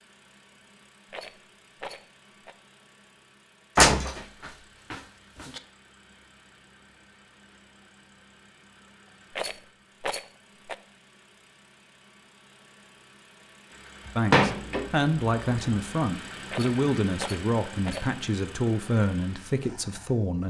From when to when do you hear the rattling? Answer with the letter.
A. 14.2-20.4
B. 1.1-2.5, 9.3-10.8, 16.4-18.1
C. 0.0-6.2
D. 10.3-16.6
B.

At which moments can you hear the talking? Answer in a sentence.
The talking can be heard from 14.2 to 20.4 s.